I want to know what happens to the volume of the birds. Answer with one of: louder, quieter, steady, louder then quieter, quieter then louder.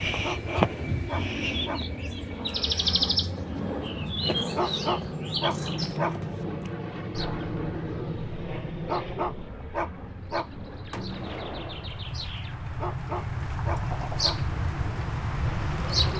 quieter then louder.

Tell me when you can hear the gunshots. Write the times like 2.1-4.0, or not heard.
10.9-12.2.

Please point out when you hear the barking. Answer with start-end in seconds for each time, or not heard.
0.1-1.9, 4.3-6.2, 8.7-10.5, 12.6-14.4.